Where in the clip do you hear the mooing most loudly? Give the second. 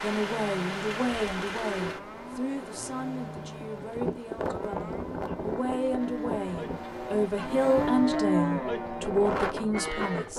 8 s.